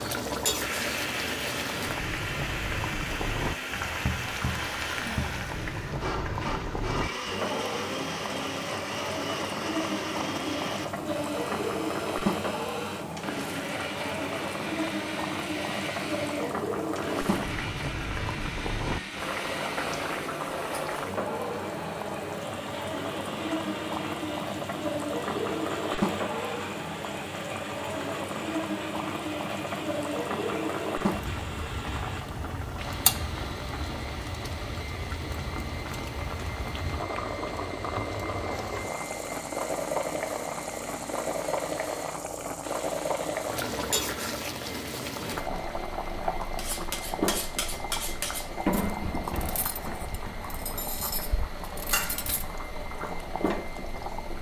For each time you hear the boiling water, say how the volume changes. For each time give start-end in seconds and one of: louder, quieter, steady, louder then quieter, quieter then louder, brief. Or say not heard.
0.0-54.3 steady.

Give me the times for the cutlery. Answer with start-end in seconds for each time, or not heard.
46.5-52.5.